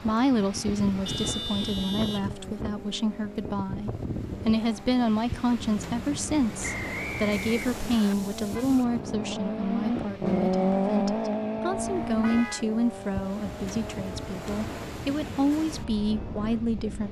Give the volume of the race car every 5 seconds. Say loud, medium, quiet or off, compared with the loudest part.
quiet, medium, loud, quiet.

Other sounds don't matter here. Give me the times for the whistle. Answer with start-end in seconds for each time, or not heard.
6.6-8.2.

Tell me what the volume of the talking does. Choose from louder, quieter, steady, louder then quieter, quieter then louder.
steady.